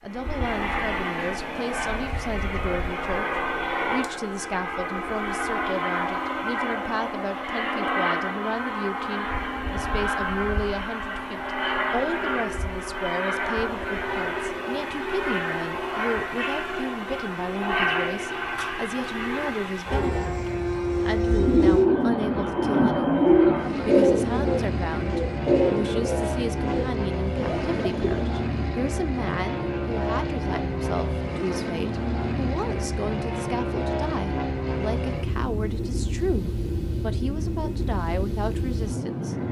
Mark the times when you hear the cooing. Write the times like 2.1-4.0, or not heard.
21.4-28.3.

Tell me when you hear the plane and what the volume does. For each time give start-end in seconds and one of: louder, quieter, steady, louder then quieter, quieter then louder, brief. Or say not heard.
0.0-39.4 steady.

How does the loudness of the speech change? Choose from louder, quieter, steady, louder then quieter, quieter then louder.
steady.